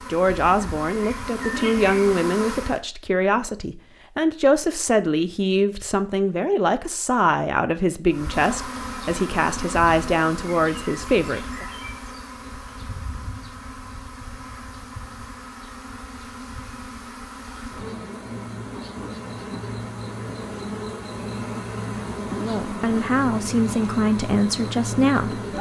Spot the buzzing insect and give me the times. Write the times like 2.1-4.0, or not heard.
0.0-2.8, 8.1-25.5.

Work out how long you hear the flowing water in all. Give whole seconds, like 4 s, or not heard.
not heard.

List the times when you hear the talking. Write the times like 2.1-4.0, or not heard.
0.1-11.7, 22.3-25.4.